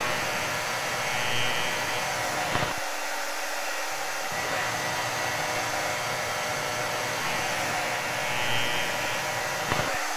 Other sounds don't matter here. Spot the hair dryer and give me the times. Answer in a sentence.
The hair dryer can be heard from 0.0 to 10.1 s.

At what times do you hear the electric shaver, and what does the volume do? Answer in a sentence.
The electric shaver can be heard from 0.0 to 10.1 s, at a steady volume.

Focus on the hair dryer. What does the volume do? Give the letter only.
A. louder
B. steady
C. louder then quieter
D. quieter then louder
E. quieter
B.